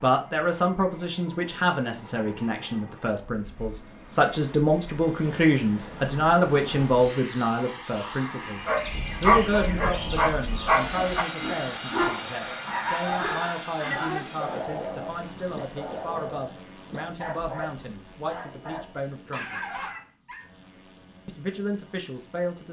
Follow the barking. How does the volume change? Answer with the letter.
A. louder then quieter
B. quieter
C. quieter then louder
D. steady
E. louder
B.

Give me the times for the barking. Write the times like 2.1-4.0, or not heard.
8.6-20.4.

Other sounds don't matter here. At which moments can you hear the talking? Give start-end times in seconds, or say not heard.
0.0-8.6, 9.2-19.7, 21.2-22.6.